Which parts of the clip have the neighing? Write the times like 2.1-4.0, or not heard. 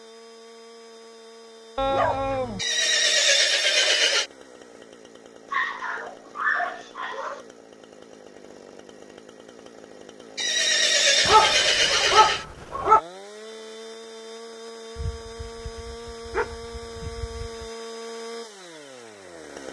2.5-4.3, 10.3-12.4.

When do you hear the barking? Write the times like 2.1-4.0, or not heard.
1.8-2.6, 5.5-7.5, 11.2-13.0, 14.9-17.7.